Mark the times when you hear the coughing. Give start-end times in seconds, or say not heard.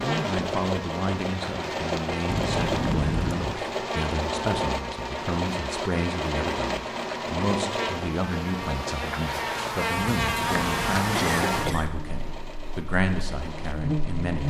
2.2-3.5, 9.9-11.9.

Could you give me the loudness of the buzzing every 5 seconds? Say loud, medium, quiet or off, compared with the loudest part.
medium, medium, loud.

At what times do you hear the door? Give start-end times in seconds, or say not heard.
not heard.